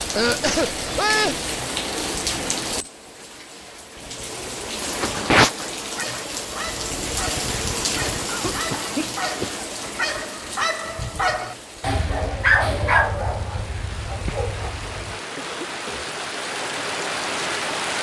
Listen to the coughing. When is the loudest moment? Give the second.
1 s.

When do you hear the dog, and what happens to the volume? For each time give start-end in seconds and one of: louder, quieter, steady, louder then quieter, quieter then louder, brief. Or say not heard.
5.8-15.2 louder then quieter.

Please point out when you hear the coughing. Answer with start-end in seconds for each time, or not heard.
0.1-1.4, 8.2-9.7, 15.3-16.1.